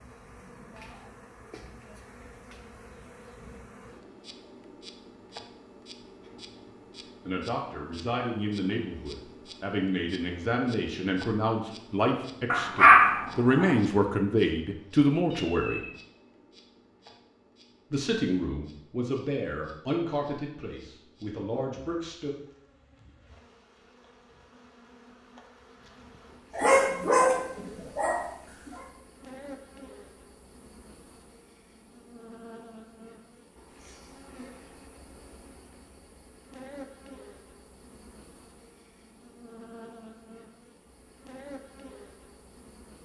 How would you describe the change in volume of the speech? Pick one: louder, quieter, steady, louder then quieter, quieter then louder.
louder then quieter.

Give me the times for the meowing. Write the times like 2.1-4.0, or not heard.
15.3-16.0.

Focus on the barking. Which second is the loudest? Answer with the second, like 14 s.
13 s.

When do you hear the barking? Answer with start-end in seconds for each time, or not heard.
12.5-13.8, 26.6-28.9.